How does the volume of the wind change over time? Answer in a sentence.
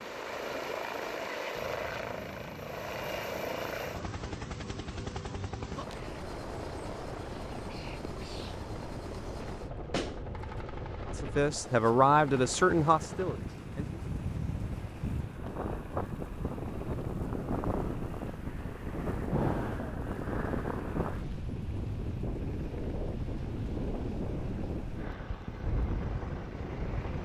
The volume of the wind goes up.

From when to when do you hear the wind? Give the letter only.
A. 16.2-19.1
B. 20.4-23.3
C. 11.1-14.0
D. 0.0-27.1
D.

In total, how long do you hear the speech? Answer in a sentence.
The speech can be heard for 3 seconds in total.